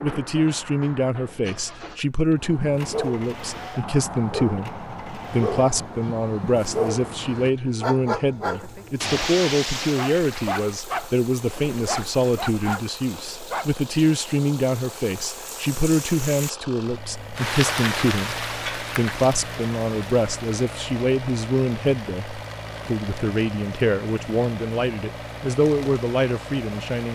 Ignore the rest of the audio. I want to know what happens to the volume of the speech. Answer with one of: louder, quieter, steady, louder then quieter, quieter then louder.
steady.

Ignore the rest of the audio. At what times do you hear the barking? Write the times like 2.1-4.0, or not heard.
2.4-13.8.